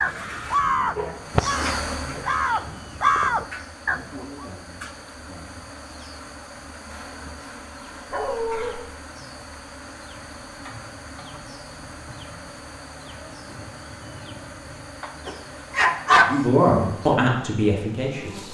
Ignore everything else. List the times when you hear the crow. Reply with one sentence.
The crow can be heard from 0.0 to 4.5 s.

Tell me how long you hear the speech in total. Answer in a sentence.
The speech can be heard for 2 seconds in total.